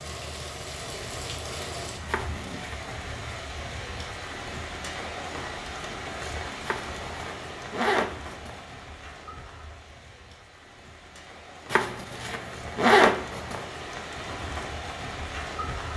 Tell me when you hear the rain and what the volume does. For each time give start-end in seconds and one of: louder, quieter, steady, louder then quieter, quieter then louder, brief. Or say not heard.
0.0-15.9 quieter then louder.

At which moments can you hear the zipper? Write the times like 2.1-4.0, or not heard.
2.0-3.2, 6.7-8.6, 11.7-13.7.